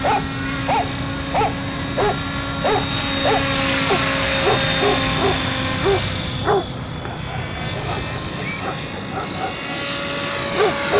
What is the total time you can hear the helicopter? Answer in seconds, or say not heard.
11 s.